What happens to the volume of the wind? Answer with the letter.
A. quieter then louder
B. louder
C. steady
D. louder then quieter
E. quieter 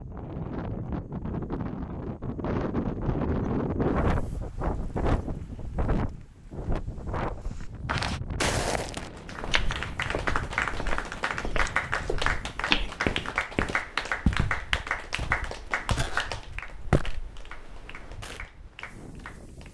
E.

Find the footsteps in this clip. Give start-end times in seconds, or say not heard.
7.4-18.4.